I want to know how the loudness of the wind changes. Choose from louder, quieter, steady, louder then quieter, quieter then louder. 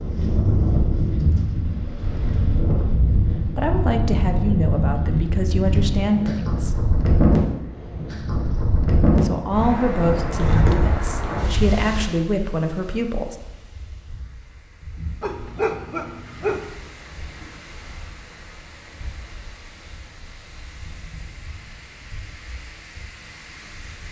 quieter.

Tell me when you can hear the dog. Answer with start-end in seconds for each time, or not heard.
15.2-16.6.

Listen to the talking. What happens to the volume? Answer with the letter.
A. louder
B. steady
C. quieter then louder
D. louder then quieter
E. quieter
B.